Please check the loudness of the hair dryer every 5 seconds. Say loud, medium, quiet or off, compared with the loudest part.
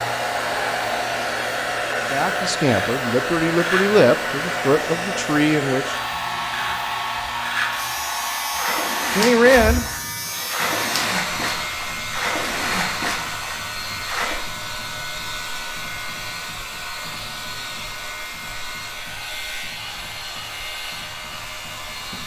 loud, loud, medium, medium, medium.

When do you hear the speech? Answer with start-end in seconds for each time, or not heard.
2.1-6.0, 9.1-9.8.